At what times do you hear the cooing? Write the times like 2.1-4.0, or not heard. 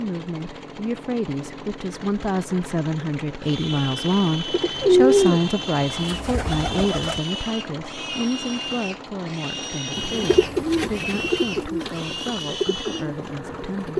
4.5-7.2, 9.9-13.9.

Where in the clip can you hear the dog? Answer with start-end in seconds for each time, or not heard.
not heard.